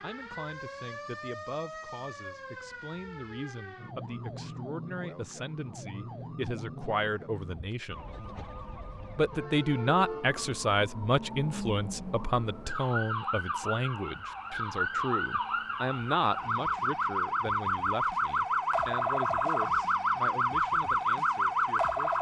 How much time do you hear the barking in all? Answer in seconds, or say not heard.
not heard.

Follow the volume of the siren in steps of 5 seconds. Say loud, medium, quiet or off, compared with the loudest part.
quiet, quiet, medium, loud, loud.